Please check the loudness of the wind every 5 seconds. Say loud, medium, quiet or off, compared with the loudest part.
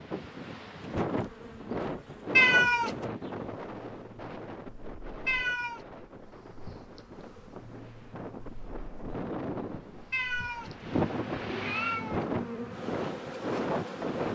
loud, medium, loud.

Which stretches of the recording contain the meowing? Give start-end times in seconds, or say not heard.
2.4-3.1, 5.2-5.8, 10.1-12.8.